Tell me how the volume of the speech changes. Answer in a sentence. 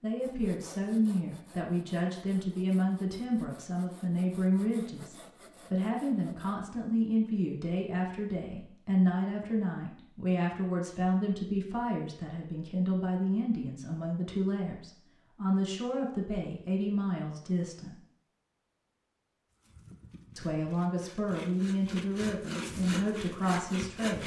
The volume of the speech stays about the same.